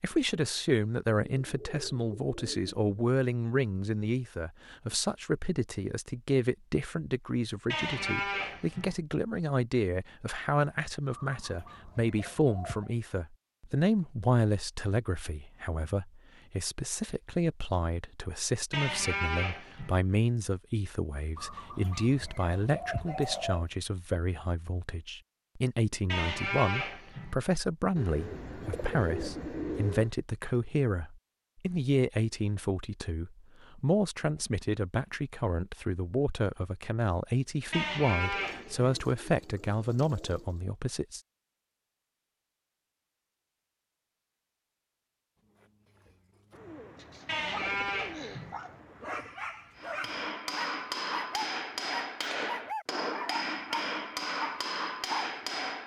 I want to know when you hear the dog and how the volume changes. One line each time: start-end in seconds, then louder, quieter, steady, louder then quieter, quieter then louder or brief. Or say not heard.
45.5-55.4 louder.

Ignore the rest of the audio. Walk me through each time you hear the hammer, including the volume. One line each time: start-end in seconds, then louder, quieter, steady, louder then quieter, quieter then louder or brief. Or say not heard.
49.8-55.8 steady.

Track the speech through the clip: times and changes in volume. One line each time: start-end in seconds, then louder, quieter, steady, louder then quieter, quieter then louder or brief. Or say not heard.
0.0-41.2 steady.